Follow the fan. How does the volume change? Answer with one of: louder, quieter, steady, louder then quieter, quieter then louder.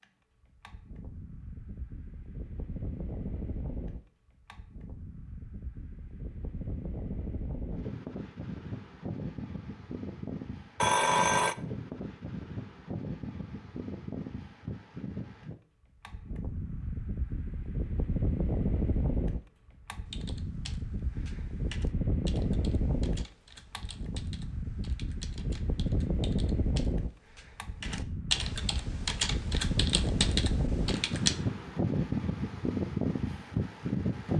louder.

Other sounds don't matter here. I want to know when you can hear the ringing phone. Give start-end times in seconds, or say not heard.
10.8-11.6.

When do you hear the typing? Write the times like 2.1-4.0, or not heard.
20.1-31.4.